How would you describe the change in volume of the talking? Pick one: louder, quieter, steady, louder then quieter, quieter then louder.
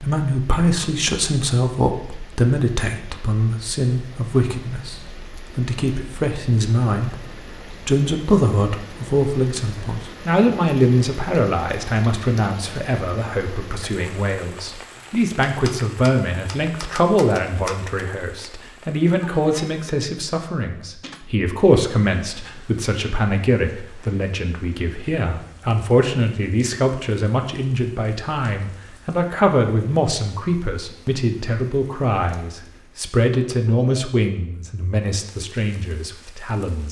steady.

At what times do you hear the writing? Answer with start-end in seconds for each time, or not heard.
not heard.